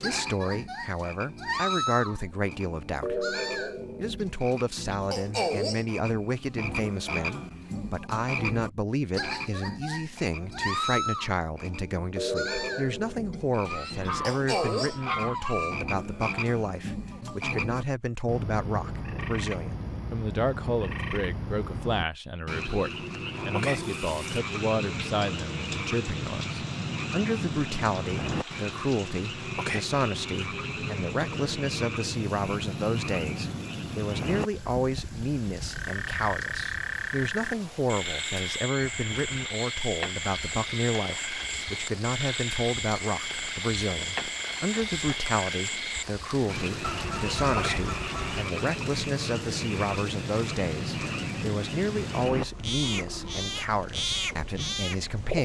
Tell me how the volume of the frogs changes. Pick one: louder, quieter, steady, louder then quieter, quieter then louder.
steady.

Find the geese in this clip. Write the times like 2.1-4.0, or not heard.
13.7-15.8, 46.8-48.5.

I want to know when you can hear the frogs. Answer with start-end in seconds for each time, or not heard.
0.0-55.4.